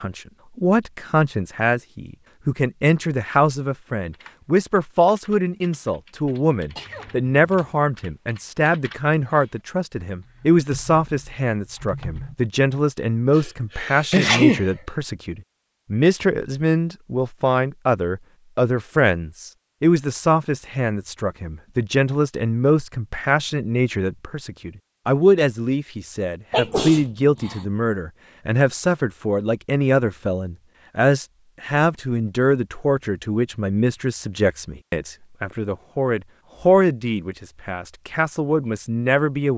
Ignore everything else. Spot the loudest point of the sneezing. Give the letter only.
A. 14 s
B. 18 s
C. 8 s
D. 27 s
A.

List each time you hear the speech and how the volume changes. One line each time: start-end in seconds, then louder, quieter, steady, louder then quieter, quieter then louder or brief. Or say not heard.
0.0-39.5 steady.